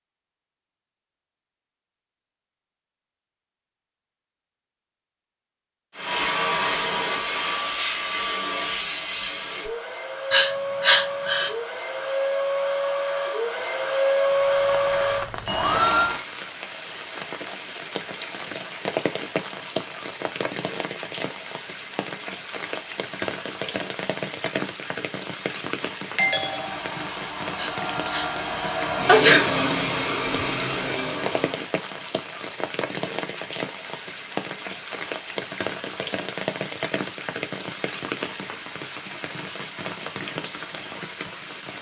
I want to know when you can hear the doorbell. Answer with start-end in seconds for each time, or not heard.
26.1-26.8.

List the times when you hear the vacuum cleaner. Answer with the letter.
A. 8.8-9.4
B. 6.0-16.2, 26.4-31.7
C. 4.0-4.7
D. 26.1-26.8
B.